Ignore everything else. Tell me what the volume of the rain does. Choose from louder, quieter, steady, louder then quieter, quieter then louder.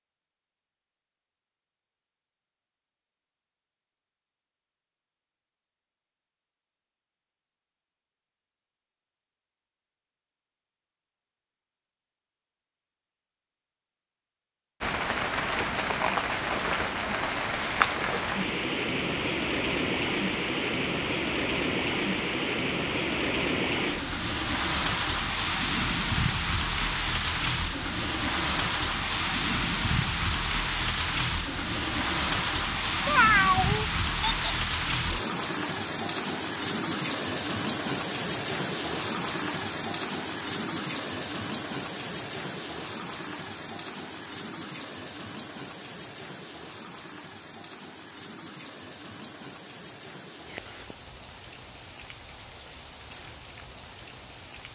quieter.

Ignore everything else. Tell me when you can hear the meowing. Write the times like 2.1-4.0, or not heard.
33.0-34.5.